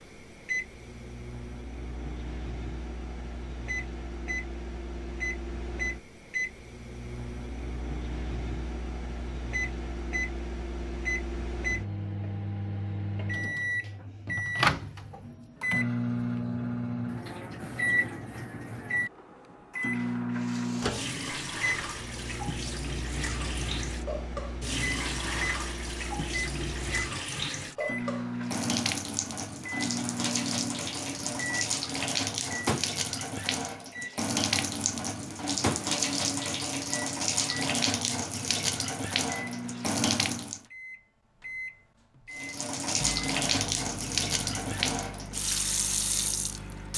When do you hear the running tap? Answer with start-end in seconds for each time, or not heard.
20.4-40.6, 42.3-46.9.